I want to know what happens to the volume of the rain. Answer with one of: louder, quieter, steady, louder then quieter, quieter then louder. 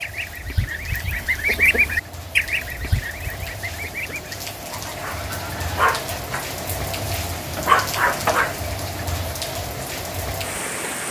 louder.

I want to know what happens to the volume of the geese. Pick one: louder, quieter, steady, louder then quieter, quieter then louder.
louder then quieter.